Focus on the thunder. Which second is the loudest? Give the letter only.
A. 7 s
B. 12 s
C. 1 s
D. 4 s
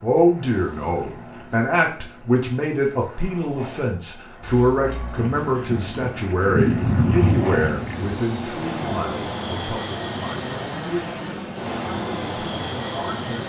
A.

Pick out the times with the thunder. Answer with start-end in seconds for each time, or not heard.
5.2-8.2.